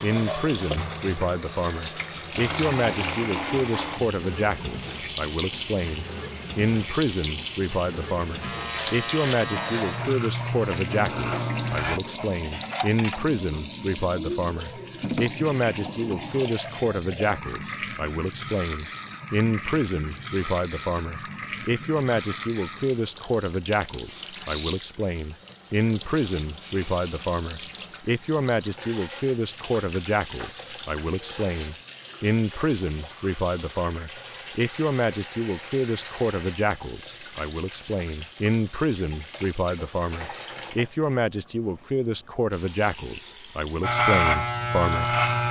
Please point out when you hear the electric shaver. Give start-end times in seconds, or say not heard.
8.4-12.0, 43.8-45.4.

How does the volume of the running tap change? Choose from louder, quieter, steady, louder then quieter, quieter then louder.
quieter.